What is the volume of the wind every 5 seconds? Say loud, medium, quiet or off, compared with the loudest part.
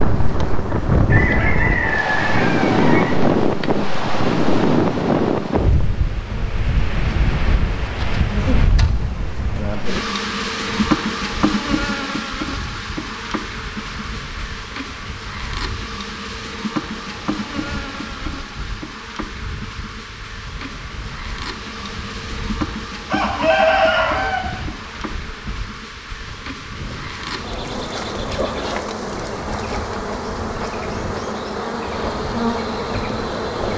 loud, medium, quiet, quiet, quiet, quiet, quiet.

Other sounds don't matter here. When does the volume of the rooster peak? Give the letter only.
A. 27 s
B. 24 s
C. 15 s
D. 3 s
B.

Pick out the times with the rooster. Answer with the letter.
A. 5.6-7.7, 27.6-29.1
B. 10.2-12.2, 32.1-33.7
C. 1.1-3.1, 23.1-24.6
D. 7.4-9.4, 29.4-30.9
C.